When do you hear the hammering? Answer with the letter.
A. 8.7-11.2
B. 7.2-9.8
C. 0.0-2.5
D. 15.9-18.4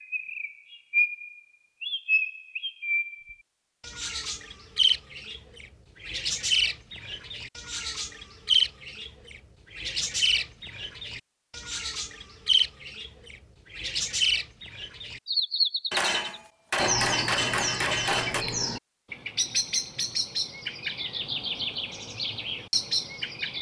D.